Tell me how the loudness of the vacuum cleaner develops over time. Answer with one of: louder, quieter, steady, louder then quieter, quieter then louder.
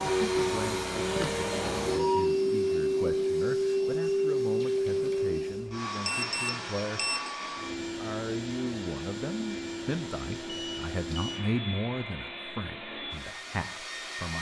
quieter.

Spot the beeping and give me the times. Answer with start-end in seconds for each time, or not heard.
1.1-2.7, 6.0-7.3, 10.4-11.4.